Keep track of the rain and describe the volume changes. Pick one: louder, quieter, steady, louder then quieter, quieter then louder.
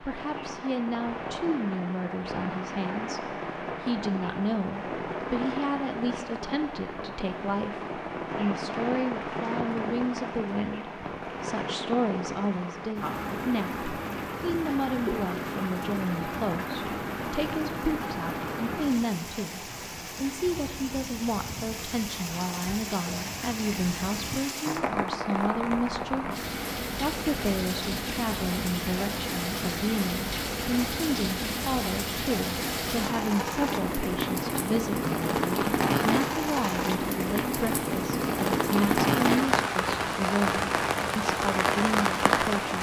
louder.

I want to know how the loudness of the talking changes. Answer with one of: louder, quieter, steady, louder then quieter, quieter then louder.
steady.